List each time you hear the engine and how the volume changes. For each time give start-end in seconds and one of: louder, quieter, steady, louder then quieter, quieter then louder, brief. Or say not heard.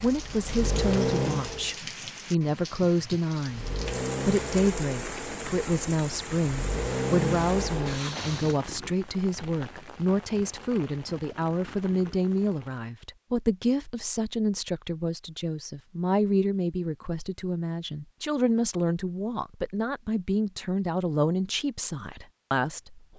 0.0-1.8 brief
3.4-8.6 quieter then louder.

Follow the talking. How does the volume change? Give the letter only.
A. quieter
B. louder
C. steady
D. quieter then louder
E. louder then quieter
C.